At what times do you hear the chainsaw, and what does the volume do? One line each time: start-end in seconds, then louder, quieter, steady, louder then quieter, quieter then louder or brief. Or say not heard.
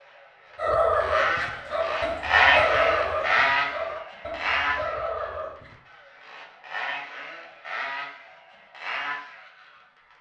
0.0-10.1 louder then quieter.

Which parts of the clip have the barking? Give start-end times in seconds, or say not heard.
0.6-5.8.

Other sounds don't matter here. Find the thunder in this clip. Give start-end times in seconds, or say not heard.
not heard.